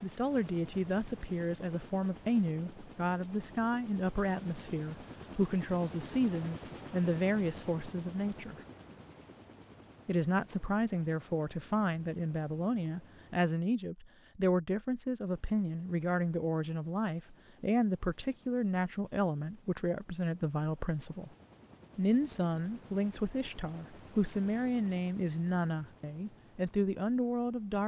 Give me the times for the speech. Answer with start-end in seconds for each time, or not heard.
0.0-8.6, 10.1-21.3, 21.9-27.8.